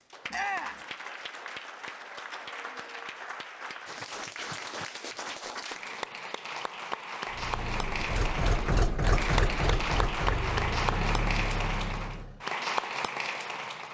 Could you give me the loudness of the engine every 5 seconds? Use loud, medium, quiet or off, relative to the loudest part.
off, loud, loud.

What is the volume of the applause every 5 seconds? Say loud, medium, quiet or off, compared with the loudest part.
medium, loud, loud.